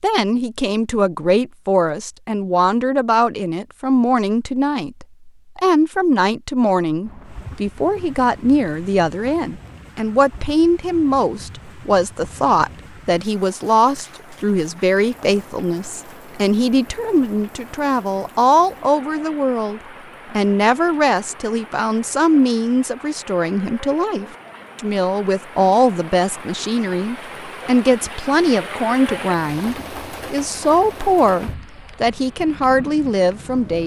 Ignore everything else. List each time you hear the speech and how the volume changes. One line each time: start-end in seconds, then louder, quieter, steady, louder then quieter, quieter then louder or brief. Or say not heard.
0.0-33.8 steady.